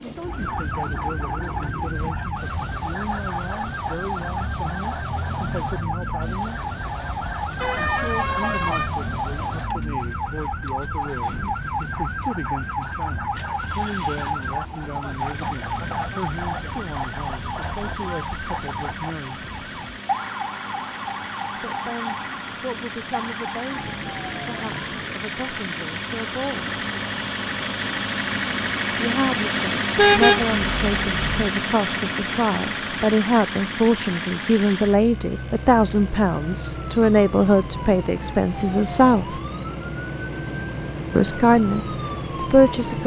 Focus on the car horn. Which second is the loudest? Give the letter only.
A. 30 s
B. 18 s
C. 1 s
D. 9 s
A.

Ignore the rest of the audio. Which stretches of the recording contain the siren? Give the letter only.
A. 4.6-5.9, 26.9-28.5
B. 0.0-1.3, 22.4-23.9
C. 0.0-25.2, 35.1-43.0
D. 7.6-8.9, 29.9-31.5
C.